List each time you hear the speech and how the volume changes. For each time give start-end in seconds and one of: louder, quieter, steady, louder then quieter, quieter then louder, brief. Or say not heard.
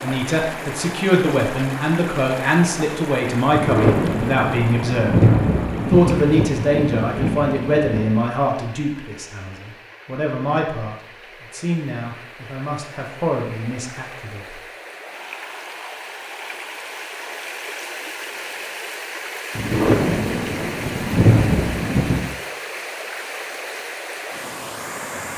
0.0-14.6 quieter.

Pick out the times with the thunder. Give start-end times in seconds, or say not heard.
3.5-8.2, 19.6-22.3.